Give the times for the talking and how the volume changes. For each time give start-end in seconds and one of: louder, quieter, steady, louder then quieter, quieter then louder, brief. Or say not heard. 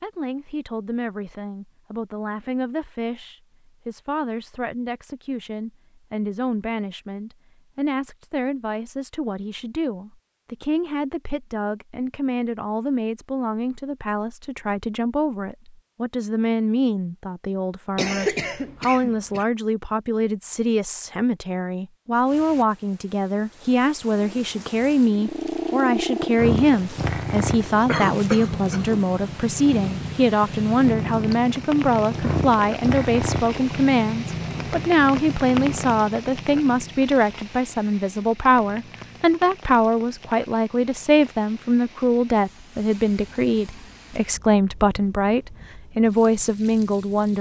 0.0-47.3 louder.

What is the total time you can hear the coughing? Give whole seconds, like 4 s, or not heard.
3 s.